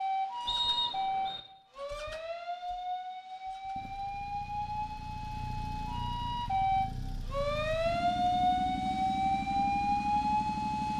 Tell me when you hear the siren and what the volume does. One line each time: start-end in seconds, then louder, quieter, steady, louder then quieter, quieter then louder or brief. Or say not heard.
0.0-10.9 louder.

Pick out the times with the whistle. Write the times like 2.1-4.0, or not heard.
0.5-1.4.